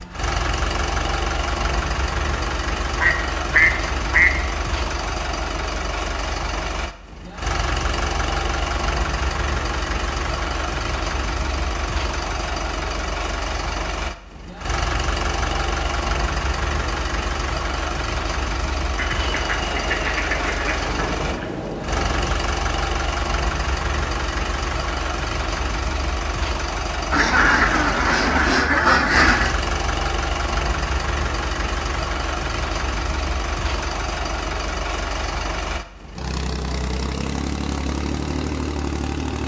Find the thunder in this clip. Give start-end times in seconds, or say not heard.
19.4-22.4.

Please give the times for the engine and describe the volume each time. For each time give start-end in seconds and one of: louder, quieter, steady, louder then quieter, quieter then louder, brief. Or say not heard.
0.0-39.4 steady.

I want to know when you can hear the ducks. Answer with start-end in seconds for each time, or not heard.
3.0-4.3, 18.9-21.6, 27.1-29.6.